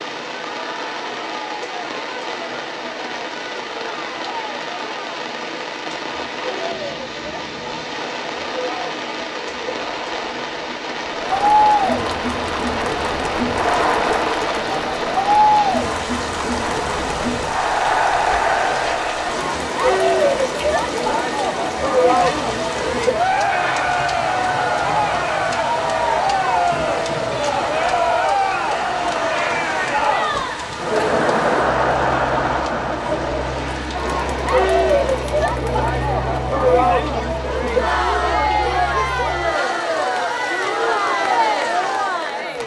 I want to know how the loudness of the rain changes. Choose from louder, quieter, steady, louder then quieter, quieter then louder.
steady.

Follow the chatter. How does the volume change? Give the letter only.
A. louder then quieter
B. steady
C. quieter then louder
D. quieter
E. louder
E.